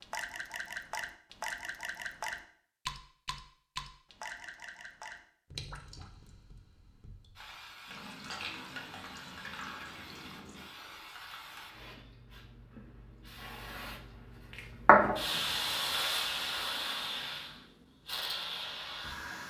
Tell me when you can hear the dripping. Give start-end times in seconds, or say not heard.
0.0-10.7.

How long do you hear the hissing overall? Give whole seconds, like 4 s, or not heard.
12 s.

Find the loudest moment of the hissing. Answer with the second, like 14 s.
15 s.